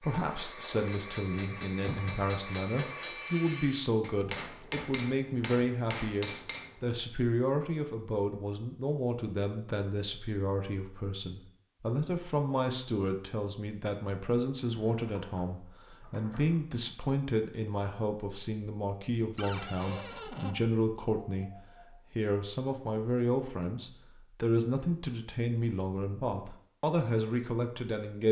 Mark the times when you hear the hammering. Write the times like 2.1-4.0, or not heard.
0.0-7.0.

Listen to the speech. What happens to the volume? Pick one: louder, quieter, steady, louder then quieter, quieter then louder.
steady.